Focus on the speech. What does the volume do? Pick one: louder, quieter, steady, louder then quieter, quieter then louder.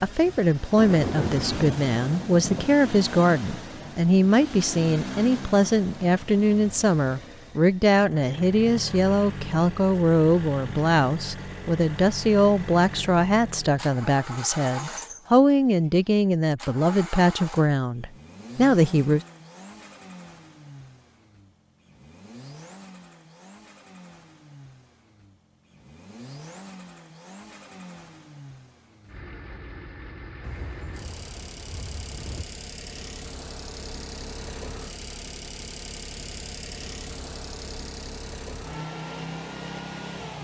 steady.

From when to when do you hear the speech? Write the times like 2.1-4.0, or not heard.
0.0-19.2.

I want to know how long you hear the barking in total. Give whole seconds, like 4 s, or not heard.
not heard.